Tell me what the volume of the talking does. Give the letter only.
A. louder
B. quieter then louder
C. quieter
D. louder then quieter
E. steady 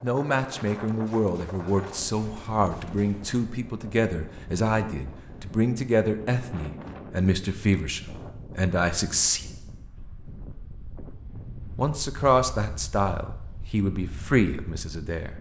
E.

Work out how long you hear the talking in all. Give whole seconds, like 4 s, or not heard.
13 s.